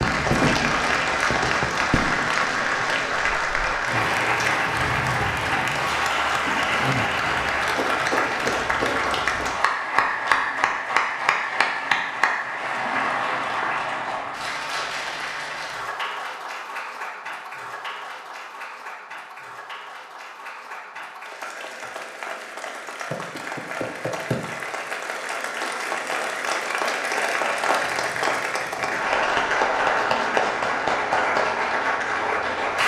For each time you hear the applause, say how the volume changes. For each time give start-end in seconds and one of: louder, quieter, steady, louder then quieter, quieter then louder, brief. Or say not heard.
0.0-32.8 quieter then louder.